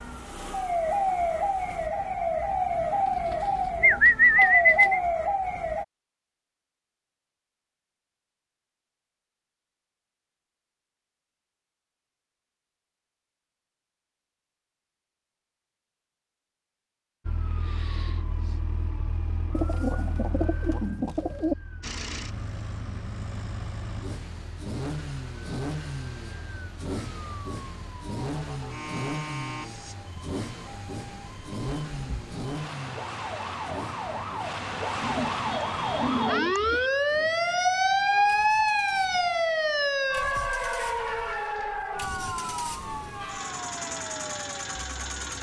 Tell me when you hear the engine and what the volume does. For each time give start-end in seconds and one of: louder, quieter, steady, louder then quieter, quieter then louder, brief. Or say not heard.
0.0-1.9 brief
21.8-45.3 quieter then louder.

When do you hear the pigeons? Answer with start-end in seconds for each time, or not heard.
3.3-5.0, 19.5-21.6, 35.0-36.9.